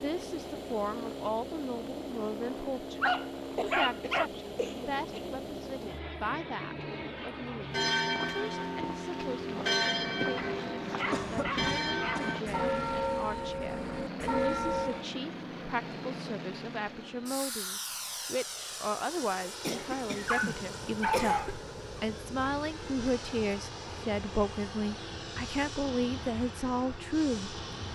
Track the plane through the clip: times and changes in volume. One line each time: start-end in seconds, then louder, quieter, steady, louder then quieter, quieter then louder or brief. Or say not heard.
0.0-27.9 steady.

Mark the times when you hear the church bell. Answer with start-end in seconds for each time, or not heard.
7.7-15.1.